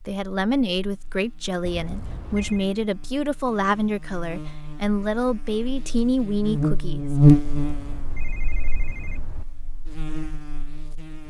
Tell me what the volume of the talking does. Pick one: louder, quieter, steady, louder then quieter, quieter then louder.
steady.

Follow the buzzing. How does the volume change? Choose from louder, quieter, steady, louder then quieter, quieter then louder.
louder then quieter.